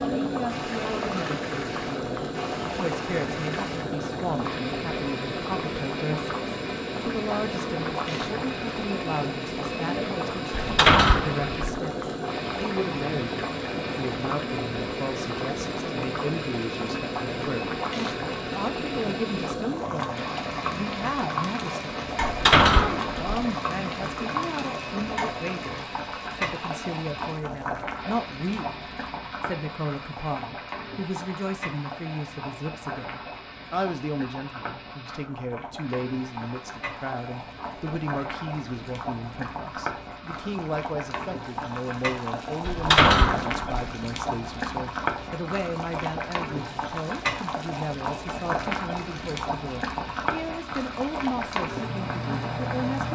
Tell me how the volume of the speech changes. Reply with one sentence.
The loudness of the speech stays about the same.